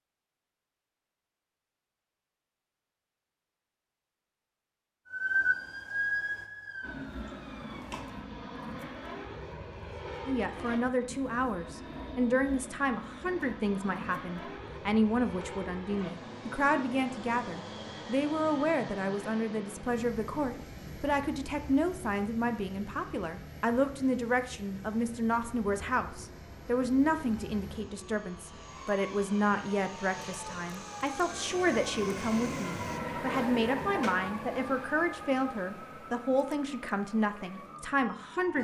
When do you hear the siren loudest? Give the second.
6 s.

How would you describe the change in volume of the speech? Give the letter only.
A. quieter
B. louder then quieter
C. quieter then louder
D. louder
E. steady
E.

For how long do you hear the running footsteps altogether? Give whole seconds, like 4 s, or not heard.
not heard.